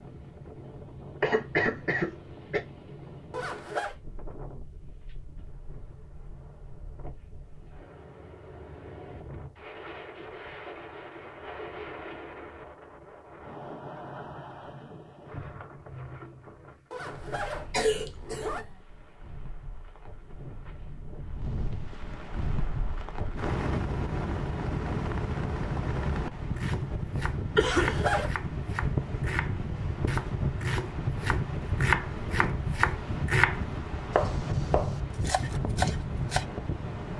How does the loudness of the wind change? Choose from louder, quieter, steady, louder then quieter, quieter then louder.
louder.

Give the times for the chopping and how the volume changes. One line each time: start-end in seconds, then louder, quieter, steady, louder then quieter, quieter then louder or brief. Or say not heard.
26.6-36.5 louder then quieter.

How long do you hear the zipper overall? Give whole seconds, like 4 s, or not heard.
3 s.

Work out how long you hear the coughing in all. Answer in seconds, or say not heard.
3 s.